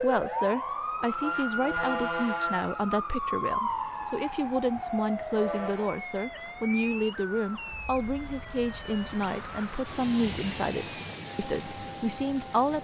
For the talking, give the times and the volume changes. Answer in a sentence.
The talking can be heard from 0.0 to 12.7 s, at a steady volume.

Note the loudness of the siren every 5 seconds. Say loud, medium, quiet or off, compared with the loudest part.
loud, medium, quiet.